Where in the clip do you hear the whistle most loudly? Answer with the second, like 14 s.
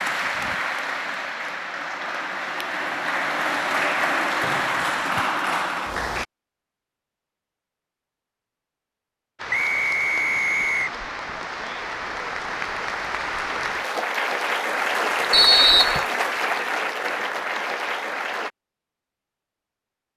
16 s.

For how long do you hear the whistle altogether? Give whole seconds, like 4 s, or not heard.
3 s.